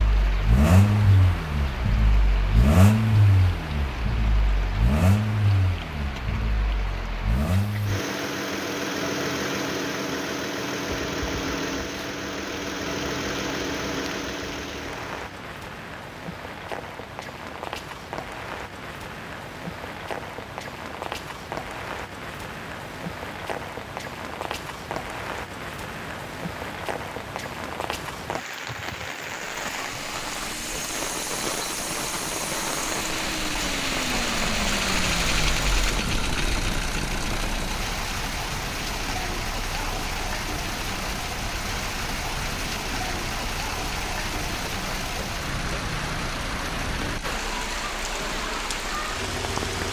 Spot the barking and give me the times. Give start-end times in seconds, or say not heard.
not heard.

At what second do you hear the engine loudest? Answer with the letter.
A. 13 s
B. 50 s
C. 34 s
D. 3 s
D.